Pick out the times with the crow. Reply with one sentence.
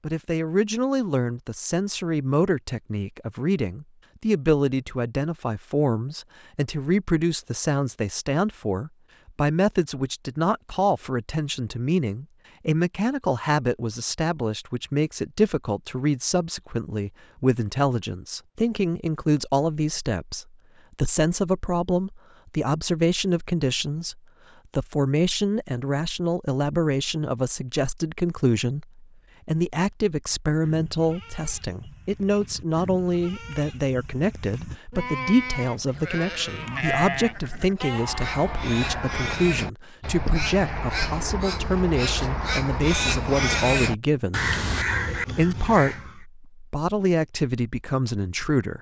The crow can be heard from 37.9 to 46.2 s.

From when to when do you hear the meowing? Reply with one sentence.
The meowing can't be heard in this clip.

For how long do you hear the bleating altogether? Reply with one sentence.
The bleating can be heard for 9 seconds in total.